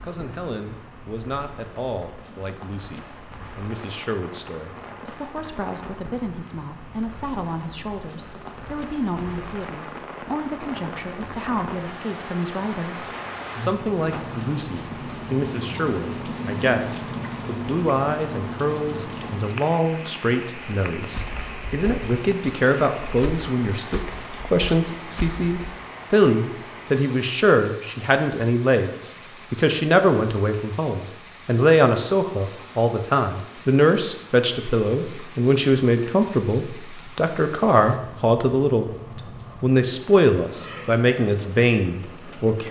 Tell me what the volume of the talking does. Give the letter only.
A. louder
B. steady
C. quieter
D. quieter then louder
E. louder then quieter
A.